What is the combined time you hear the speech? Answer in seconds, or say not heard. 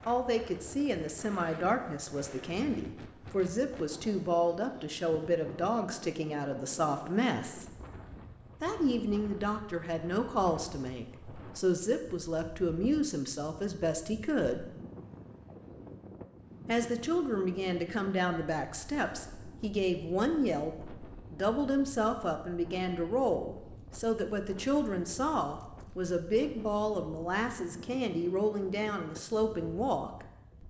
27 s.